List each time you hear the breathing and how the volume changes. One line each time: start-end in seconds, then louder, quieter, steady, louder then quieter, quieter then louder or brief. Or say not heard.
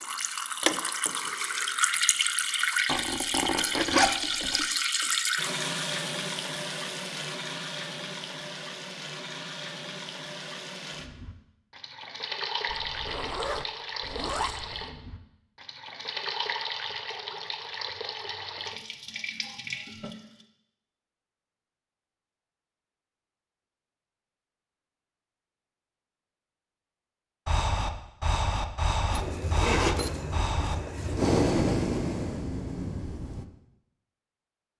27.4-33.5 louder then quieter.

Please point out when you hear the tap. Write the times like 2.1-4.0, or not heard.
0.0-20.4.